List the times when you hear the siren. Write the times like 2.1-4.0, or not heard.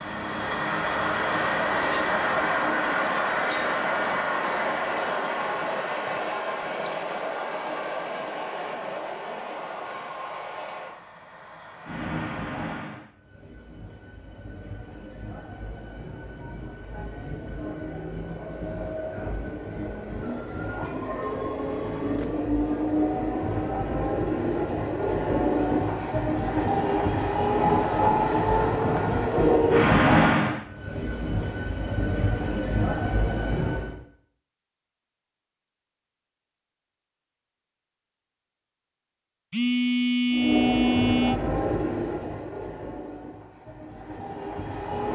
not heard.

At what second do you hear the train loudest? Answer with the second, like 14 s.
30 s.